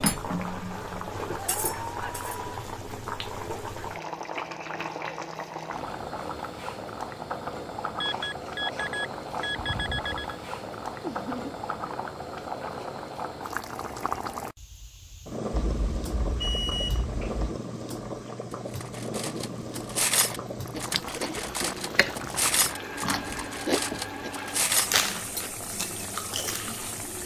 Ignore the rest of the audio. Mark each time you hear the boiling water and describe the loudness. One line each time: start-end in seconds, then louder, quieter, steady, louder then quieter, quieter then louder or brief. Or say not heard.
0.0-27.2 steady.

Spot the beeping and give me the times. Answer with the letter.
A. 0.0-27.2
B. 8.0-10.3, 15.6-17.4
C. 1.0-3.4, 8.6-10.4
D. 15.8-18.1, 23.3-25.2
B.